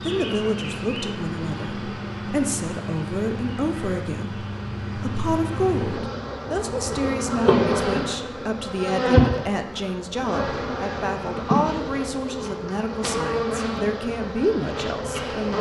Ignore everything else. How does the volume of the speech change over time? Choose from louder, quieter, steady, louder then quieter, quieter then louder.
steady.